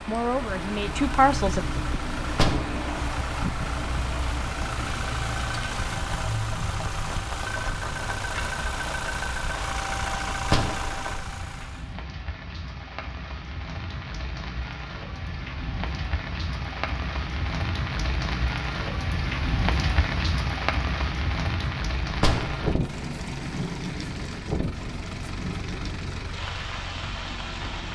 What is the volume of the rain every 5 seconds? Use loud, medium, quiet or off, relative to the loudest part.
medium, medium, medium, loud, loud, medium.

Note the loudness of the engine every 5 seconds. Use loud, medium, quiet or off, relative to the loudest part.
loud, loud, loud, off, medium, medium.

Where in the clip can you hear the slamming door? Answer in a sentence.
You can hear the slamming door from 2.2 to 2.9 s, from 10.4 to 11.1 s and from 22.1 to 22.6 s.